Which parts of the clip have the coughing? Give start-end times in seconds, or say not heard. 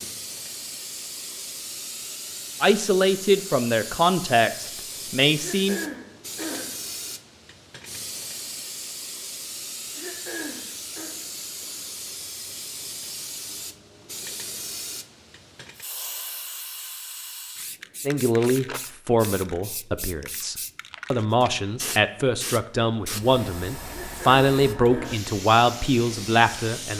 5.3-6.7, 9.9-11.2, 23.9-25.2.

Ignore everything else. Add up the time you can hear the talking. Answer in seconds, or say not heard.
12 s.